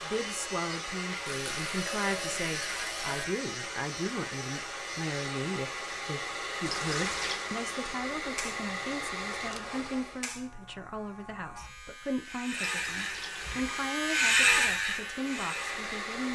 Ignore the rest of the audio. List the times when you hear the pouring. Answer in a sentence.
You can hear the pouring from 1.2 to 3.2 s, from 6.7 to 7.5 s and from 12.6 to 13.9 s.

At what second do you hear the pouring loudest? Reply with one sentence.
The loudest moment of the pouring is at 7 seconds.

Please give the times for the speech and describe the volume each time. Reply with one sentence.
You can hear the speech from 0.0 to 16.2 s, at a steady volume.